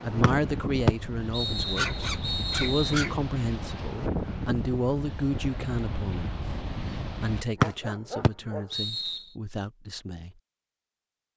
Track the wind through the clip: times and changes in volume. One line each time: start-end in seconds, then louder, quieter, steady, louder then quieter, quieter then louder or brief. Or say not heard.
0.0-7.5 steady.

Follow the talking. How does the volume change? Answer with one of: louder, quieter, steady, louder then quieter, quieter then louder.
quieter.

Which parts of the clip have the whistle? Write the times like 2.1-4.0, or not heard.
0.2-3.0, 7.6-9.2.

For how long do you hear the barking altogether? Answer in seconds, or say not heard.
3 s.